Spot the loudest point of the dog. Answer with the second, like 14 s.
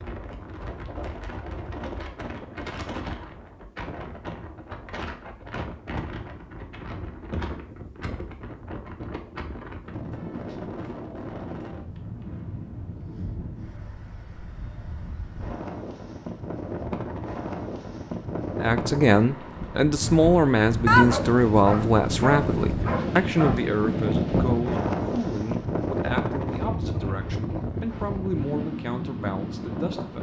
21 s.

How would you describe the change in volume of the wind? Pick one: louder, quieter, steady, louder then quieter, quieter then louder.
louder.